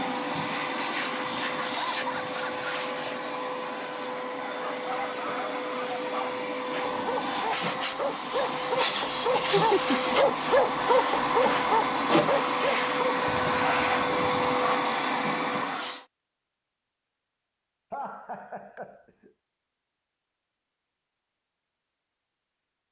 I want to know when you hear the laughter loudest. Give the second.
10 s.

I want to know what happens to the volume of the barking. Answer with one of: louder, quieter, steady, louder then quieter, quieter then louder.
louder then quieter.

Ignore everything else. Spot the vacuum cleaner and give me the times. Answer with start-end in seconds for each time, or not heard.
0.0-16.1.